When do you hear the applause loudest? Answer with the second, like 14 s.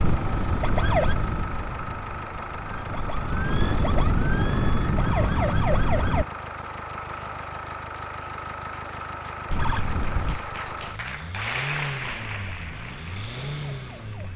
12 s.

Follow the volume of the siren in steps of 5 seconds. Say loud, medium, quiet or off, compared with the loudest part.
loud, loud, quiet.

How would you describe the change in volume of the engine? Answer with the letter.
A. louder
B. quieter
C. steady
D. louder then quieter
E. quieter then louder
C.